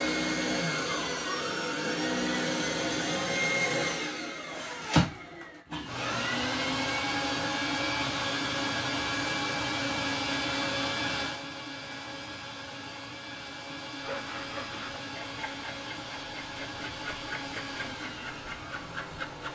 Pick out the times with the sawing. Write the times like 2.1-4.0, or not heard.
13.9-19.5.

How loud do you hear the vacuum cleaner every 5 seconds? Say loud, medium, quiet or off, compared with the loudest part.
loud, loud, medium, medium.